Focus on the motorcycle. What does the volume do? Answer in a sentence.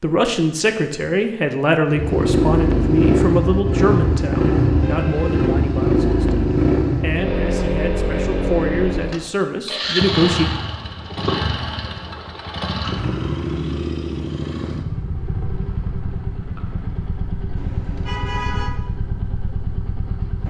The loudness of the motorcycle goes down.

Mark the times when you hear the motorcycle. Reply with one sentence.
You can hear the motorcycle from 1.9 to 20.4 s.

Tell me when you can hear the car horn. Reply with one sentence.
You can hear the car horn from 4.8 to 5.6 s and from 17.6 to 18.7 s.